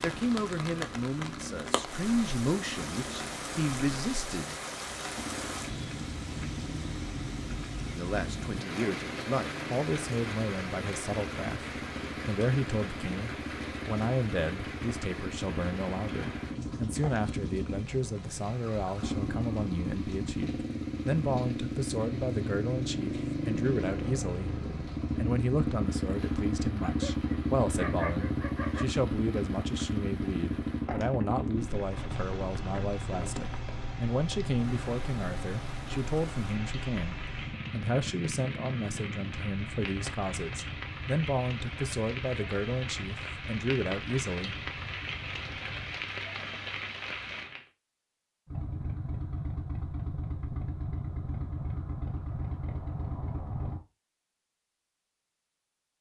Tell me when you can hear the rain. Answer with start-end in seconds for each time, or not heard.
0.0-47.7.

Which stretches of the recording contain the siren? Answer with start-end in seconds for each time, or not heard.
not heard.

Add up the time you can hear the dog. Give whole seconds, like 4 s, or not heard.
2 s.